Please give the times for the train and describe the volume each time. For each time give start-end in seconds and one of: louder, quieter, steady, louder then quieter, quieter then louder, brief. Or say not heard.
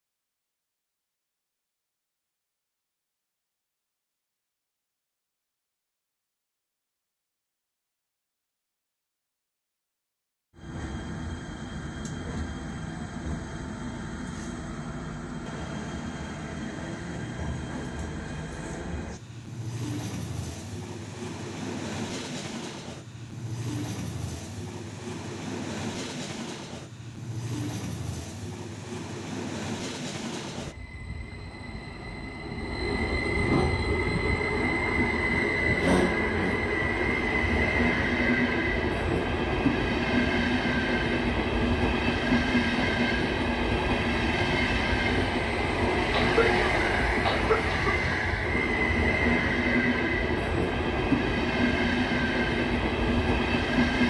10.6-54.0 louder.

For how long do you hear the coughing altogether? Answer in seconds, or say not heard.
2 s.